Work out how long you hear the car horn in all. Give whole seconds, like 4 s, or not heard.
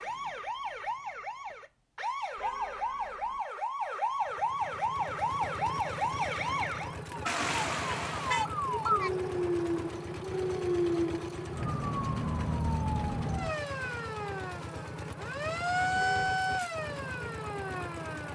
3 s.